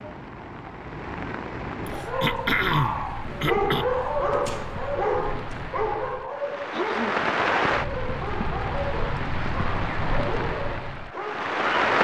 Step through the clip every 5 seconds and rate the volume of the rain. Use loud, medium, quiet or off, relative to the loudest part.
medium, loud, loud.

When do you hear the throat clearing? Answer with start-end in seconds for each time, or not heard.
1.9-3.9, 6.7-7.2.